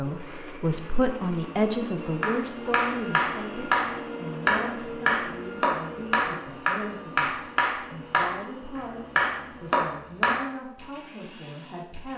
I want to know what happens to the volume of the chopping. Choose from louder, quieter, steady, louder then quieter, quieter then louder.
steady.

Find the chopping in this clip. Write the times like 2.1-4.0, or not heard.
2.2-10.4.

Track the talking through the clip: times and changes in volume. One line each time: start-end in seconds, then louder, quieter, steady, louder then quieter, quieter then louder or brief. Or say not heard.
0.0-12.1 quieter.